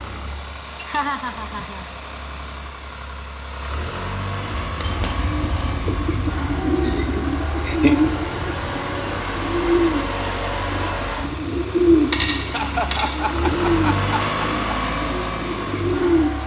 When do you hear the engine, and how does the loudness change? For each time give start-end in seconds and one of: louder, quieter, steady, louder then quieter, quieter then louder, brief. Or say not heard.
0.0-16.4 louder.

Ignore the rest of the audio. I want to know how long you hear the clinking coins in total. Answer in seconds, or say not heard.
2 s.